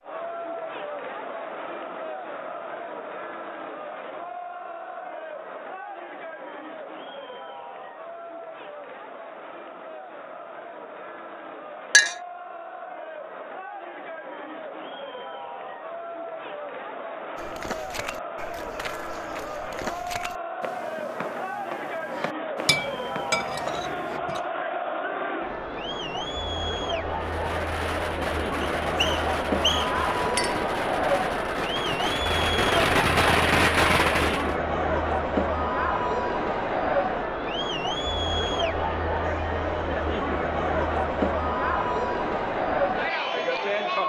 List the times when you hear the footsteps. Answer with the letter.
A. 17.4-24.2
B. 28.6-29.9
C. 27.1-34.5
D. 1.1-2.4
A.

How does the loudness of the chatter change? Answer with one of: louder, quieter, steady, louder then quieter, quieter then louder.
louder.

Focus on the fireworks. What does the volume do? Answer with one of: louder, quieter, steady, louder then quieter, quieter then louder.
louder.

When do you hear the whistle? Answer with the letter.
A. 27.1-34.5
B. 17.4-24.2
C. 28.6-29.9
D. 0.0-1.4
C.